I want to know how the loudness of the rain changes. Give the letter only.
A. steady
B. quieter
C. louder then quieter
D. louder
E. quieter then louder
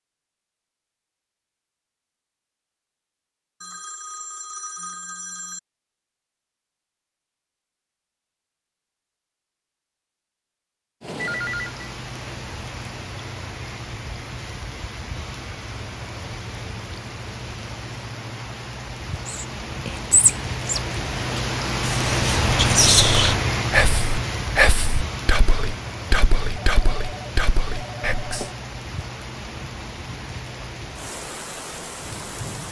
C.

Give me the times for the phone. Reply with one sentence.
The phone can be heard from 3.6 to 5.6 s, from 11.2 to 11.7 s and from 26.6 to 28.6 s.